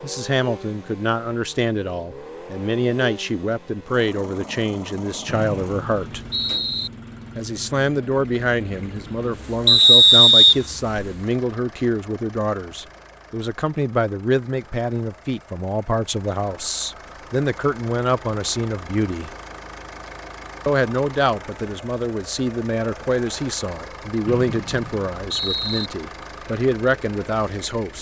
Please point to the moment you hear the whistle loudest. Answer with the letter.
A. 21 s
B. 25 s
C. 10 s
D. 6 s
C.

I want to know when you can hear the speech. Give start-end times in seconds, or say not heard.
0.0-6.2, 7.3-19.3, 20.6-27.9.